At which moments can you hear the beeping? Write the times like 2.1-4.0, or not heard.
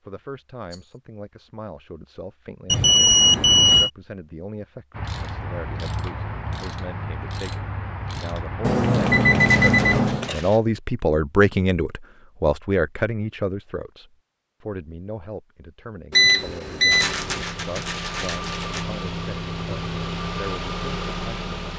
2.7-3.9, 8.6-10.3, 16.1-17.4.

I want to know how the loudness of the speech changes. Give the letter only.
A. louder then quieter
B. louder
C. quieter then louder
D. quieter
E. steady
A.